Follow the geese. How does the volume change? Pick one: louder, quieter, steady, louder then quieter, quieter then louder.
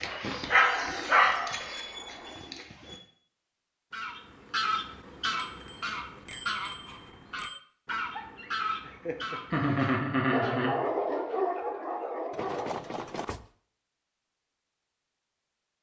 quieter.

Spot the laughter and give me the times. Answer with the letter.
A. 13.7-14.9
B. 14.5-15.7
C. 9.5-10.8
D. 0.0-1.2
C.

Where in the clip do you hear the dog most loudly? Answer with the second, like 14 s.
1 s.